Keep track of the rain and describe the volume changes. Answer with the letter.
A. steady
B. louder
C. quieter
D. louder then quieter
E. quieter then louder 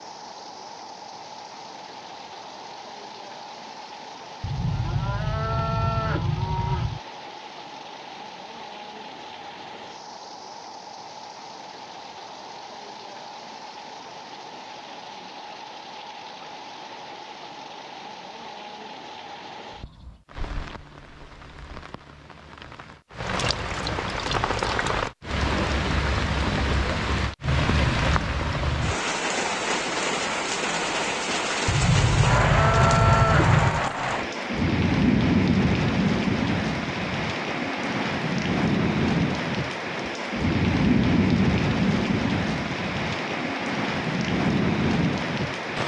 B.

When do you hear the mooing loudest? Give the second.
33 s.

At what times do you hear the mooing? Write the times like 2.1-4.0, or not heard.
4.4-7.0, 31.6-33.9.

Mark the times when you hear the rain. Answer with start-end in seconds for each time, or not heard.
0.0-45.8.